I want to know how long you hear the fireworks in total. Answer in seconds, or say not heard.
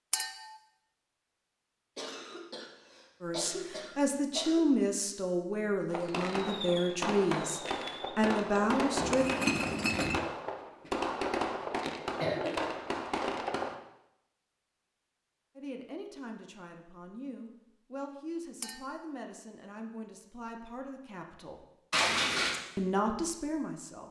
8 s.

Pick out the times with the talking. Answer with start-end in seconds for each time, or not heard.
3.2-9.2, 15.6-21.6, 22.8-24.0.